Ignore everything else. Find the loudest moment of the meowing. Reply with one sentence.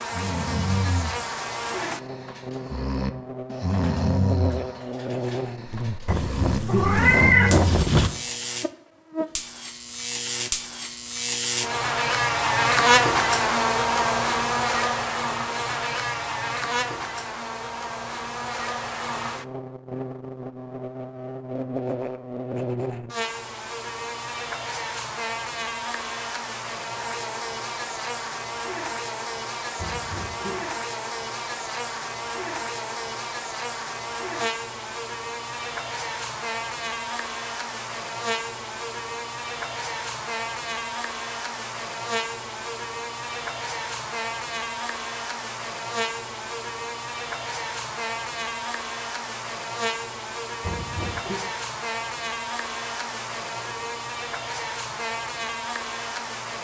The loudest moment of the meowing is at 7 seconds.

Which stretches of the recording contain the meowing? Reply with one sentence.
You can hear the meowing from 6.0 to 8.1 s, from 29.8 to 30.7 s and from 50.6 to 51.4 s.